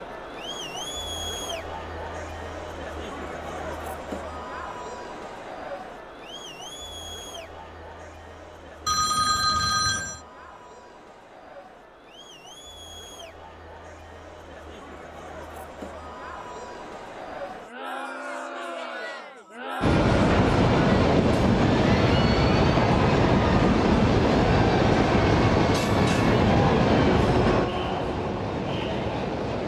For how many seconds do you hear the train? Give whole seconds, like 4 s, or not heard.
10 s.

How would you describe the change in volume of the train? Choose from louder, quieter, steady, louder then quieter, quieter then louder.
quieter.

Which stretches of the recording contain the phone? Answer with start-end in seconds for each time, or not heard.
8.8-10.2.